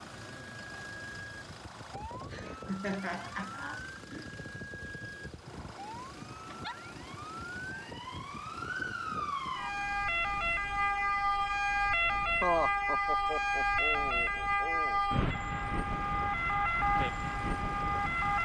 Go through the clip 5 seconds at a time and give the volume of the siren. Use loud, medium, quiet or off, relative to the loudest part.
quiet, medium, loud, loud.